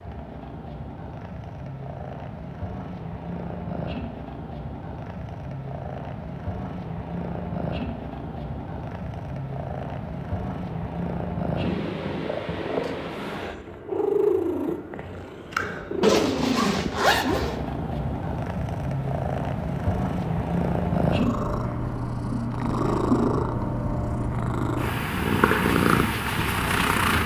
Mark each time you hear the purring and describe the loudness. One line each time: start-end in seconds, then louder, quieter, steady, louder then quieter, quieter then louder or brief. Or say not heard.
0.0-27.2 louder.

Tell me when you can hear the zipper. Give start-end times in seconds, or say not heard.
16.0-17.6.